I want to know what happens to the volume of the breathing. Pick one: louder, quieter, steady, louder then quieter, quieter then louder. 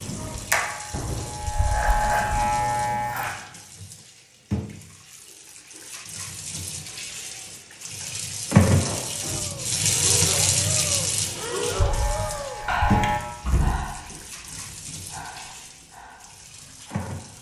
louder then quieter.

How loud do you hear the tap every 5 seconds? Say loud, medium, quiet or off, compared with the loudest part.
quiet, loud, loud, quiet.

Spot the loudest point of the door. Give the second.
14 s.